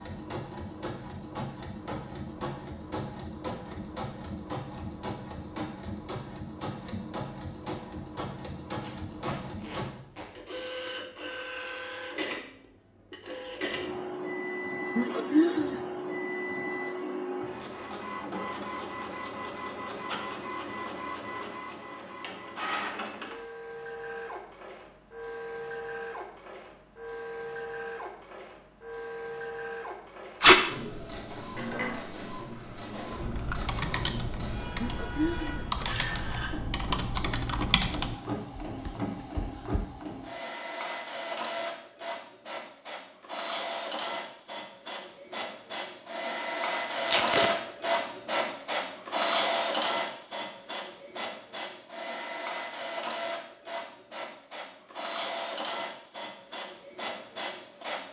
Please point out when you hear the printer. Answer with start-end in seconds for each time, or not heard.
0.0-58.0.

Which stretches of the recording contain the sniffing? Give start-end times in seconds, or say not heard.
14.9-15.8, 34.8-35.6.